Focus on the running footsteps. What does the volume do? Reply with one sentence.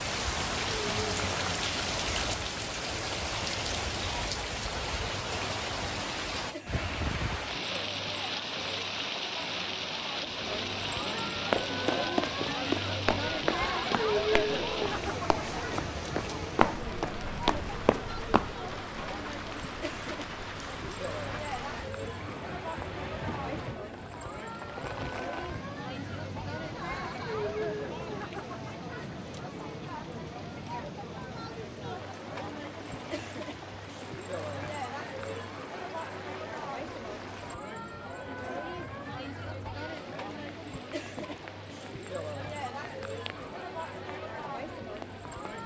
The loudness of the running footsteps goes down, then up.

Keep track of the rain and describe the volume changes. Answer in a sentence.
The loudness of the rain goes down.